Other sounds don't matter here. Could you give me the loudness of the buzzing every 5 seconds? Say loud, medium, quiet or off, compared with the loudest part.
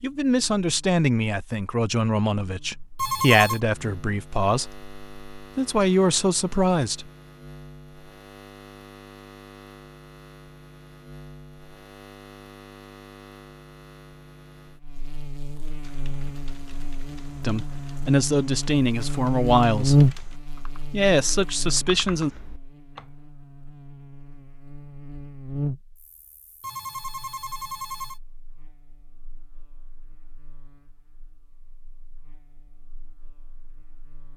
quiet, quiet, quiet, loud, loud, medium, quiet.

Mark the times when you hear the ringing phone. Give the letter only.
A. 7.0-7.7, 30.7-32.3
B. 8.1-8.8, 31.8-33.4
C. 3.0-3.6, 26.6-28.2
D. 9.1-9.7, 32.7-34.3
C.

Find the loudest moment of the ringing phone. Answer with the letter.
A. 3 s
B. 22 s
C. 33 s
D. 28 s
A.